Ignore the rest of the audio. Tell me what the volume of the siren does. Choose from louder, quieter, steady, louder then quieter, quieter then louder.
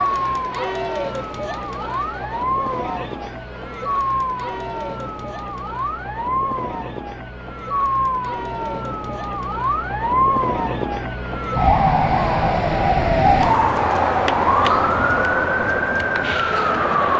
louder.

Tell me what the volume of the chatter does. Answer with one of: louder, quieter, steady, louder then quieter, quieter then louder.
quieter then louder.